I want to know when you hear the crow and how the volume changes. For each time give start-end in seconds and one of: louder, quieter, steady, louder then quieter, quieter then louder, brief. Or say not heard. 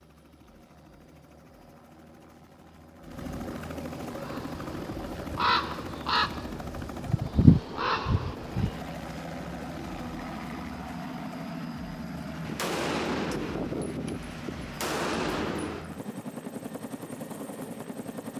4.2-8.8 louder then quieter.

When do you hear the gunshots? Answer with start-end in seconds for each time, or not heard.
12.4-15.9.